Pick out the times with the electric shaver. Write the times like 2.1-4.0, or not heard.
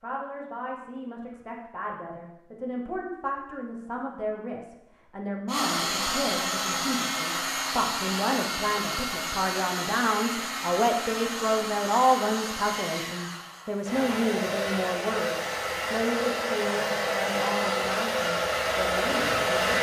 not heard.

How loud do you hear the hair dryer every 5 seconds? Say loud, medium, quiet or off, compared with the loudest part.
off, loud, medium, loud.